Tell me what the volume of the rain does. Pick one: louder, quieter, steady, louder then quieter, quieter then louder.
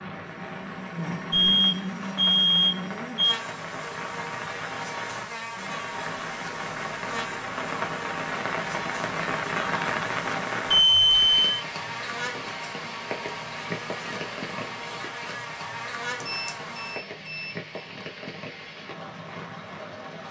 louder then quieter.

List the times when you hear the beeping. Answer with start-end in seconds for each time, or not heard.
1.3-3.4, 10.7-11.6, 16.2-17.6.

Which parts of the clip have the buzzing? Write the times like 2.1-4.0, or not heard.
0.0-17.0.